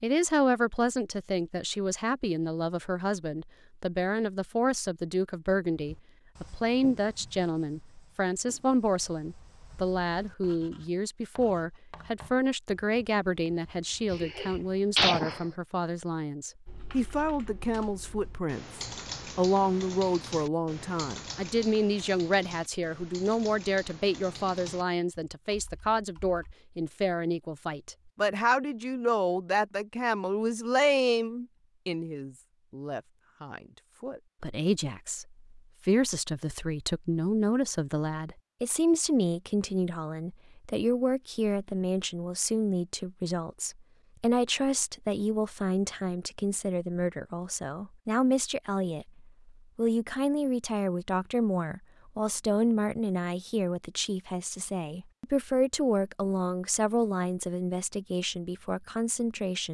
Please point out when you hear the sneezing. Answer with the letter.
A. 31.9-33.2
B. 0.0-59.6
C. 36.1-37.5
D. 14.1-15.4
D.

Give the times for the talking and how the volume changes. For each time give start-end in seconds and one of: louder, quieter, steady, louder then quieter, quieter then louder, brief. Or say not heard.
0.0-59.6 steady.